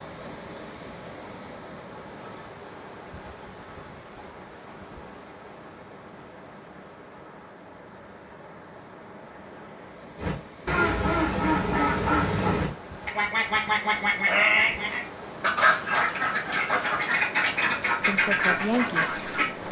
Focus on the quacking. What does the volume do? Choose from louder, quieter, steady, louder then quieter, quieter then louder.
steady.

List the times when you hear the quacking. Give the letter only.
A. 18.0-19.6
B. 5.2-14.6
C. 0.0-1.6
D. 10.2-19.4
D.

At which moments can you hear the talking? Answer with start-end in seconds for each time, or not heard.
18.0-19.6.